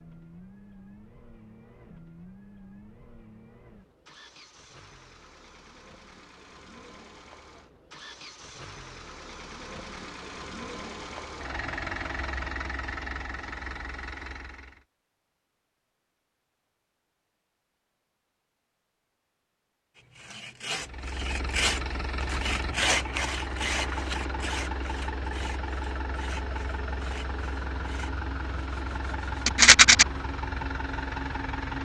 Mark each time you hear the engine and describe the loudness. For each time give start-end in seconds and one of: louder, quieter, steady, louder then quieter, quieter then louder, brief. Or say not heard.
0.0-14.8 louder
20.8-31.8 steady.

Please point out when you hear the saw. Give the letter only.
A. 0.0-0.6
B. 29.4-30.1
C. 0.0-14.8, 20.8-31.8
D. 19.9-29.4
D.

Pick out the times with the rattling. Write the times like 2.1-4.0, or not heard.
29.4-30.1.